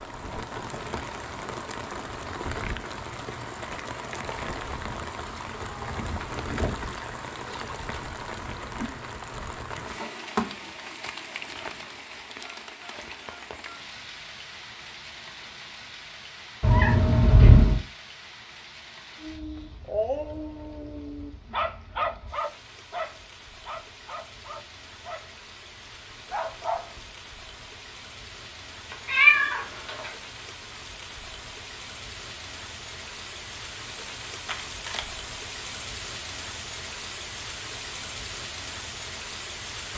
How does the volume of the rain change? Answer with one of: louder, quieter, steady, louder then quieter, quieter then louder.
quieter then louder.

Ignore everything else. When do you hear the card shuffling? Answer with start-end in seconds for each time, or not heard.
9.8-12.1, 34.5-35.0.